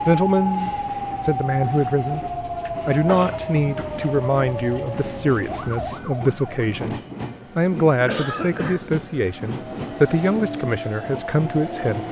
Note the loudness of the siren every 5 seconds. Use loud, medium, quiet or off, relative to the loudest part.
loud, medium, off.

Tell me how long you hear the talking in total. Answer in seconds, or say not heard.
11 s.